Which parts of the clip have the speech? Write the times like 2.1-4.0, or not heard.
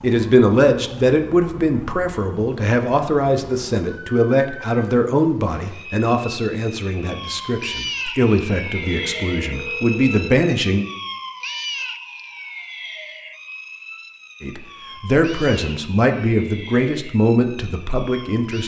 0.0-10.8, 14.4-18.6.